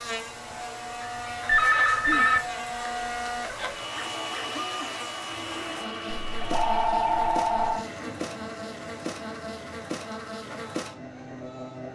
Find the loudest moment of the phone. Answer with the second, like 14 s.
2 s.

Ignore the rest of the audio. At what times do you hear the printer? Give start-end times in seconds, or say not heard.
0.1-11.8.